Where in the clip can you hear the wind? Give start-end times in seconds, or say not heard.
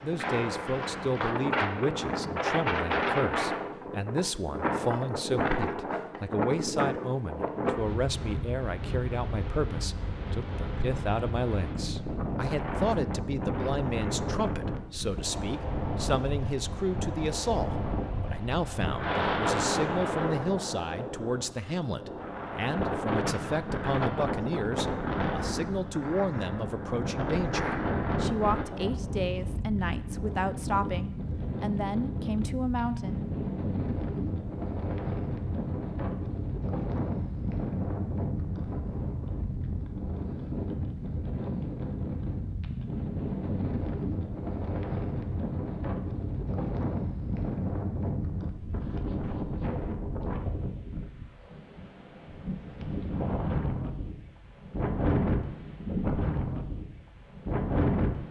0.0-58.2.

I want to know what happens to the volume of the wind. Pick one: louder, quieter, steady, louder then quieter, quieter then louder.
steady.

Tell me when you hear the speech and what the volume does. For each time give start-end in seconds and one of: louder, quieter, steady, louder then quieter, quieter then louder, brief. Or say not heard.
0.0-33.2 steady.